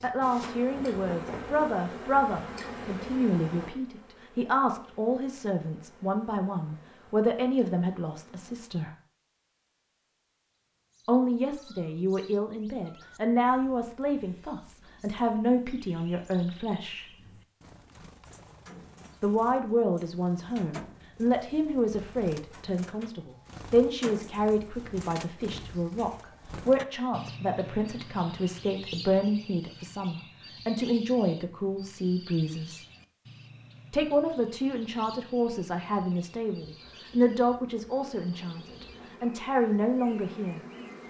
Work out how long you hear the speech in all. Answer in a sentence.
You can hear the speech for 35 seconds altogether.